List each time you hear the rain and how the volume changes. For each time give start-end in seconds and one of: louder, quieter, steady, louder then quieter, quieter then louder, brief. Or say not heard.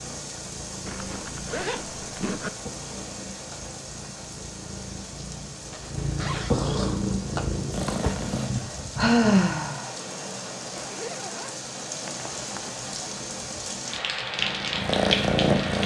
0.0-15.8 louder.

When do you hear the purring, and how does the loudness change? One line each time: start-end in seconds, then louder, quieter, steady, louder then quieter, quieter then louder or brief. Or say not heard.
0.0-8.5 louder
14.3-15.8 brief.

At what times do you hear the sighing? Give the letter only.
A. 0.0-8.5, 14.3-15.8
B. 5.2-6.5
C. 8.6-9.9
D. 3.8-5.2
C.